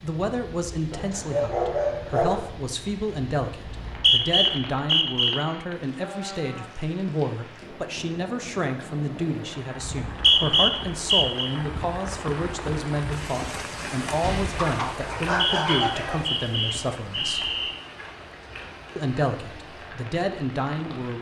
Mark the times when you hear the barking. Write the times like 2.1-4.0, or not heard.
0.9-2.5, 14.2-16.2.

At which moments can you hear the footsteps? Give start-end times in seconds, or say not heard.
not heard.